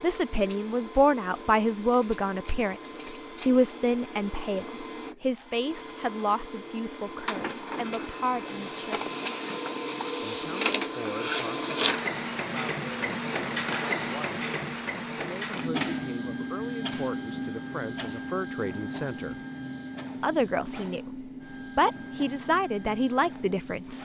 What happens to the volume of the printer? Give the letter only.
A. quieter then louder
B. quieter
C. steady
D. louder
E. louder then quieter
E.